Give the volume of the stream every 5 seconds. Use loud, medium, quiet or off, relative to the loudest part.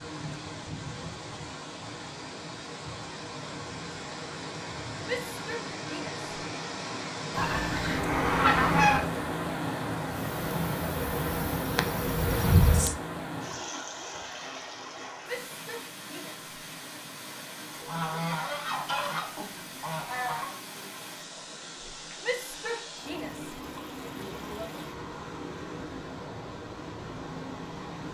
medium, loud, loud, medium, medium, medium.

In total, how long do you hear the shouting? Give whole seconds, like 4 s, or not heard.
5 s.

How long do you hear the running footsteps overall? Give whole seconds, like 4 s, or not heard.
not heard.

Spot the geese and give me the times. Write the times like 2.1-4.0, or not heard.
7.3-9.0, 17.7-20.6.